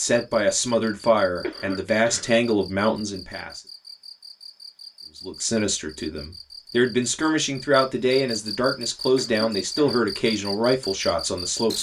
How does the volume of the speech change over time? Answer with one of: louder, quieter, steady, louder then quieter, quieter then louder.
steady.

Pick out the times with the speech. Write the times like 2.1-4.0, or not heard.
0.0-3.6, 5.2-11.7.